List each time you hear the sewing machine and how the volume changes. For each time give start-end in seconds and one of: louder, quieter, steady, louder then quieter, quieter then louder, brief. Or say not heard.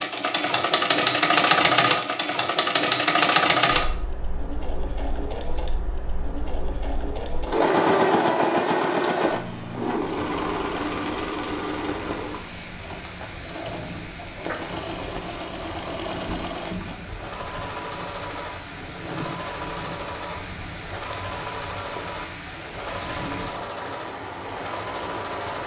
0.0-25.6 quieter.